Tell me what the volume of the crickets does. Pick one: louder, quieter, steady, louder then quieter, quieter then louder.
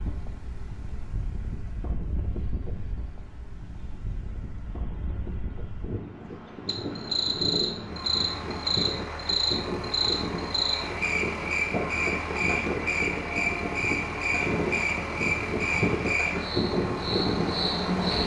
steady.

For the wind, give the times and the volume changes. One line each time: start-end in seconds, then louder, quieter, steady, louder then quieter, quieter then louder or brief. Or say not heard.
0.0-18.2 louder.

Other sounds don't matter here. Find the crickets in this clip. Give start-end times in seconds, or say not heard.
6.7-18.2.